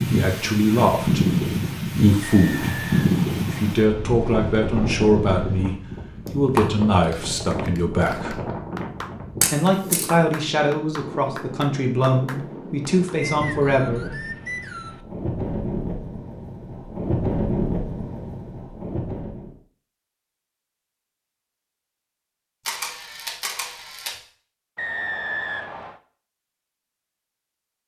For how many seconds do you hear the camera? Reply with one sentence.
The camera can be heard for 3 seconds in total.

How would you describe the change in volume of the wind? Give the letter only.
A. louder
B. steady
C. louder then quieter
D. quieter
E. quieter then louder
E.